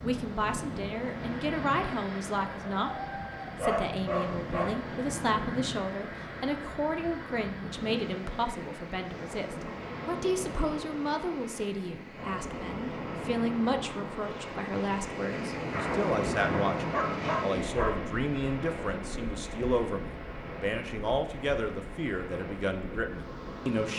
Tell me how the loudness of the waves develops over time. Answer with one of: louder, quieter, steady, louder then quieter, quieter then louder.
louder then quieter.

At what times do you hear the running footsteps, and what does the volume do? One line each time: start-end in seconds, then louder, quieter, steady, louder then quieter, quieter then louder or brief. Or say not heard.
not heard.